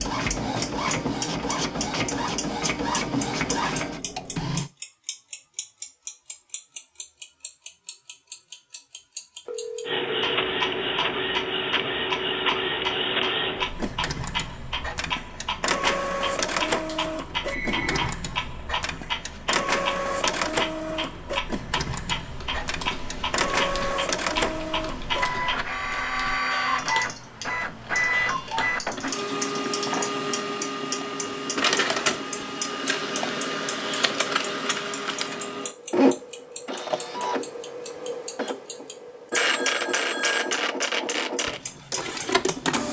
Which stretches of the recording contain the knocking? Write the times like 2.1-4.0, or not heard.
not heard.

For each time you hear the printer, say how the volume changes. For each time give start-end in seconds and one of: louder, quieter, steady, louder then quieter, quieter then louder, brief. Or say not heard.
0.0-4.7 steady
9.8-42.8 steady.